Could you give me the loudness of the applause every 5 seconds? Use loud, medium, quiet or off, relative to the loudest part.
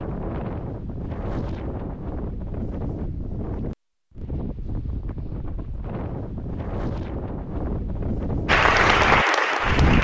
off, loud.